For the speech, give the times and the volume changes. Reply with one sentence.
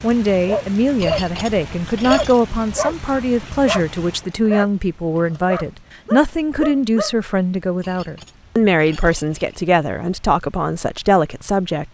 You can hear the speech from 0.0 to 11.9 s, at a steady volume.